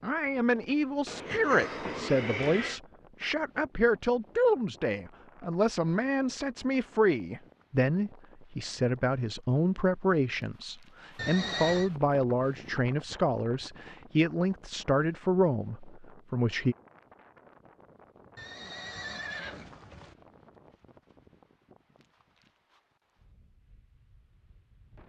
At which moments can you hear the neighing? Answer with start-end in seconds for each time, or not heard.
1.1-2.8, 11.2-11.9, 18.4-20.1.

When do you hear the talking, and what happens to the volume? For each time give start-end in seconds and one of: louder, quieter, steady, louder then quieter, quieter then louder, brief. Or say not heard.
0.0-16.8 steady.